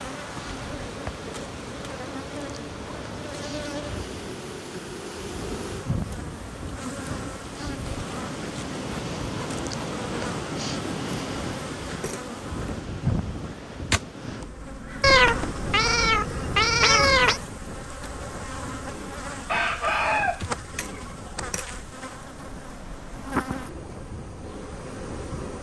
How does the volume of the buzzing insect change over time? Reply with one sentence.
The loudness of the buzzing insect stays about the same.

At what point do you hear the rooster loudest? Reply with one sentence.
The volume of the rooster peaks at 20 seconds.